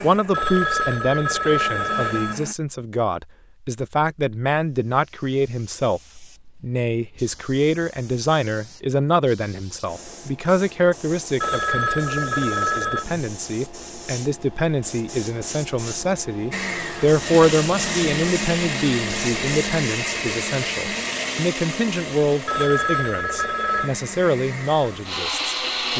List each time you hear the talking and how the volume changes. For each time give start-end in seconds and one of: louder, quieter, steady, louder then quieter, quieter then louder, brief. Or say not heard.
0.0-25.9 steady.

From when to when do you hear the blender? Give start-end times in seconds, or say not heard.
0.0-2.5, 16.5-25.9.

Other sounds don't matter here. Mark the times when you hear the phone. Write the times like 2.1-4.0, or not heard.
0.3-2.4, 11.4-13.1, 22.4-23.9.